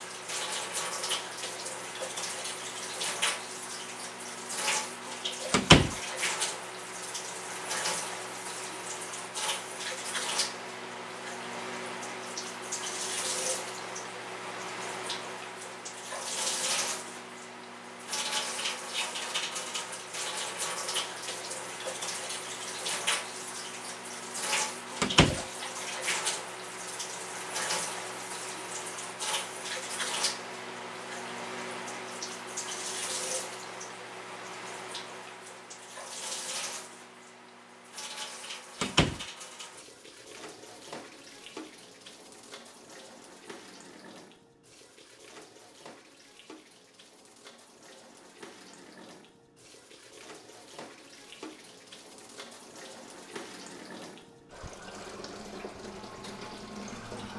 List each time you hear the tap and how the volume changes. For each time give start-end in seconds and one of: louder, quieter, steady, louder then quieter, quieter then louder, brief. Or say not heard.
0.0-57.3 quieter.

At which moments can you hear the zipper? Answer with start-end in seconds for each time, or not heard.
not heard.